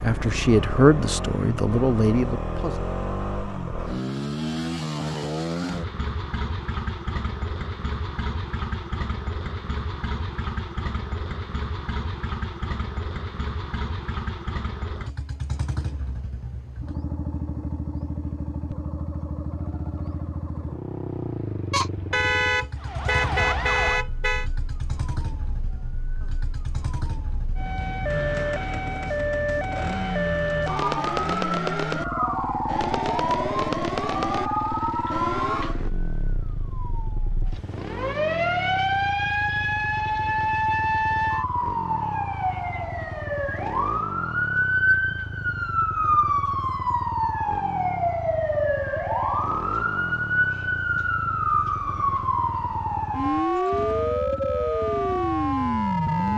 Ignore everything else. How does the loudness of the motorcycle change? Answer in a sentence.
The volume of the motorcycle goes down.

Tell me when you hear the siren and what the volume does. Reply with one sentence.
You can hear the siren from 22.8 to 56.3 s, getting louder.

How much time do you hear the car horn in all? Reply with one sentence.
The car horn can be heard for 3 seconds in total.